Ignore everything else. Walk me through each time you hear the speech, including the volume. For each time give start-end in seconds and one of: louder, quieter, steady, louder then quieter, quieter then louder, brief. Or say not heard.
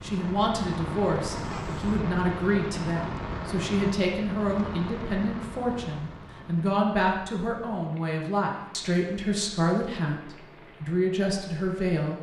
0.0-12.1 steady.